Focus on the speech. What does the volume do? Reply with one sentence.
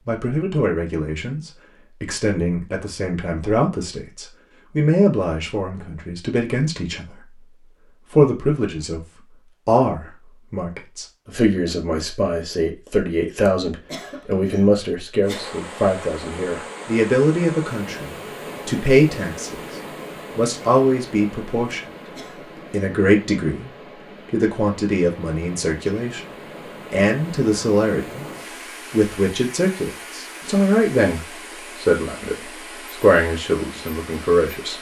The volume of the speech stays about the same.